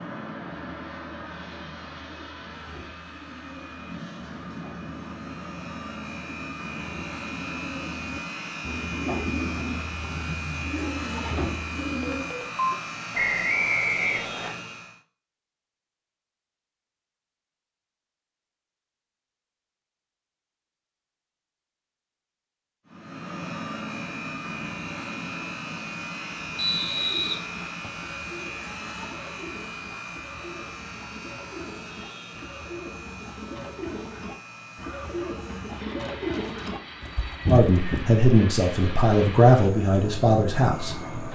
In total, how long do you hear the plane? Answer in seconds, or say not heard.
33 s.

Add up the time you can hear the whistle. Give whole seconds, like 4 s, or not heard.
3 s.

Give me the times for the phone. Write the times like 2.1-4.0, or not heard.
12.0-12.8.